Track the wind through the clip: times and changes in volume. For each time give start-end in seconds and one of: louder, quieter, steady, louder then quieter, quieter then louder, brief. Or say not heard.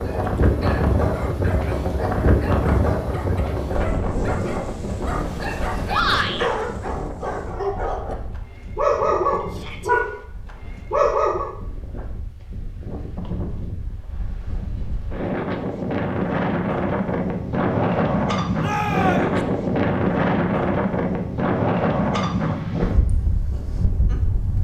0.0-24.5 quieter then louder.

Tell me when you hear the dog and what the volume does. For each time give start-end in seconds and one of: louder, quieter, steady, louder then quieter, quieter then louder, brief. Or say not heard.
0.0-10.2 louder
10.9-11.6 brief.